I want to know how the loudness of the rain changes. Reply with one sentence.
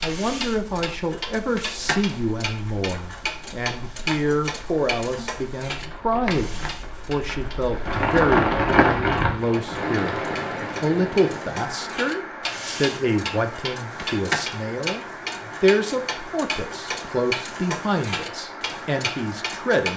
The loudness of the rain goes up, then down.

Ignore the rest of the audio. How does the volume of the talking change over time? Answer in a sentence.
The volume of the talking stays about the same.